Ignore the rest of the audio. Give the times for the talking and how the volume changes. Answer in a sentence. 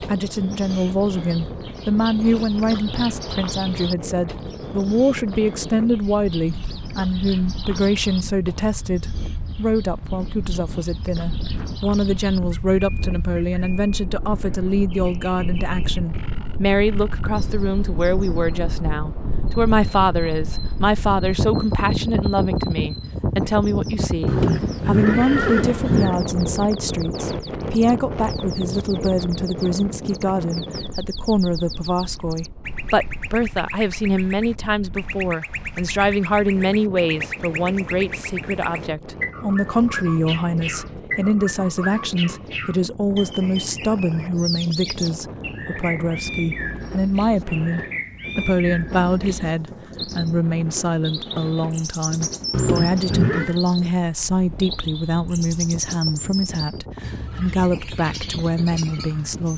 You can hear the talking from 0.0 to 59.5 s, at a steady volume.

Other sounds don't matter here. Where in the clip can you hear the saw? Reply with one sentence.
The saw can't be heard in this clip.